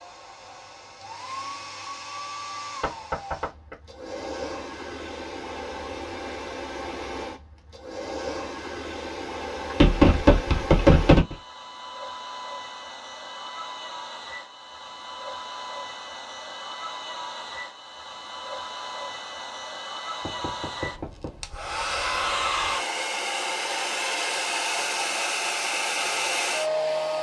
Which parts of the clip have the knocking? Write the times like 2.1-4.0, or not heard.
2.8-3.8, 9.7-11.3, 20.2-21.4.